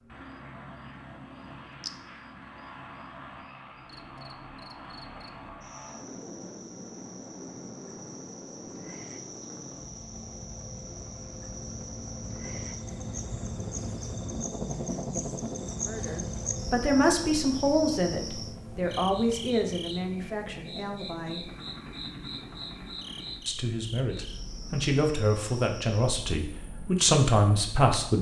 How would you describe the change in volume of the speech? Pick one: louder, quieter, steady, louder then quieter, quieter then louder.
quieter then louder.